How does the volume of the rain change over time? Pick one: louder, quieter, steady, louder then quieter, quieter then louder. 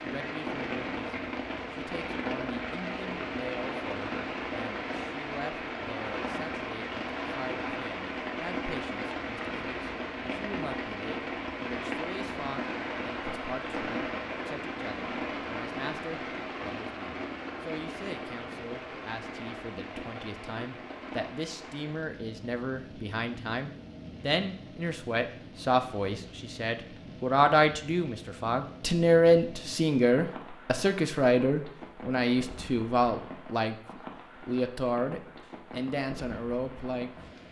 quieter.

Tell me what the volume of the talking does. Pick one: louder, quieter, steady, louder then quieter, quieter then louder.
louder.